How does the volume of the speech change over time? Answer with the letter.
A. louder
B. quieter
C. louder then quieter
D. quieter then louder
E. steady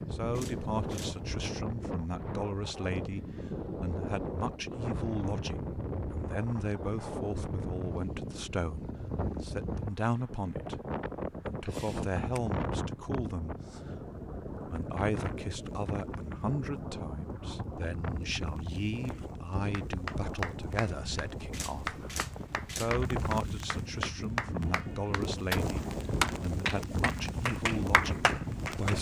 E.